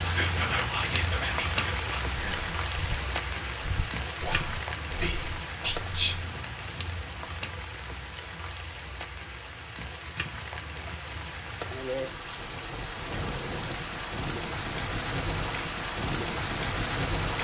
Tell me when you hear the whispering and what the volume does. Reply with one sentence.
The whispering can be heard from 0.0 to 6.2 s, getting quieter then louder.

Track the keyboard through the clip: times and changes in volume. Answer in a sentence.
You can't hear the keyboard here.